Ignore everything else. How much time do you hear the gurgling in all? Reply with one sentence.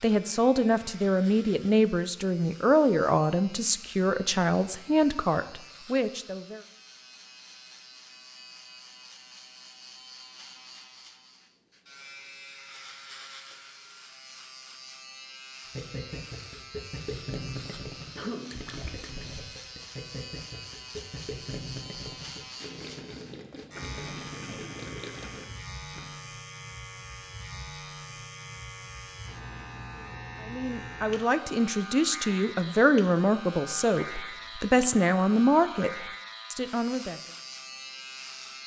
The gurgling can be heard for 10 seconds in total.